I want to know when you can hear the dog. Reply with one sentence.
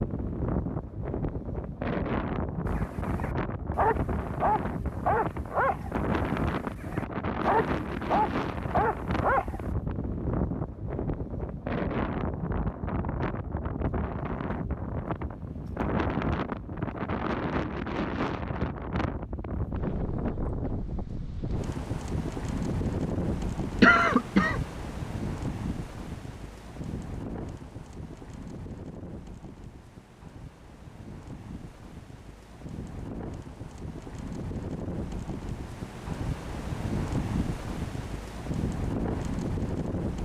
The dog can be heard from 2.6 to 9.6 s.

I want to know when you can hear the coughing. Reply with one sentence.
The coughing can be heard from 23.8 to 24.6 s.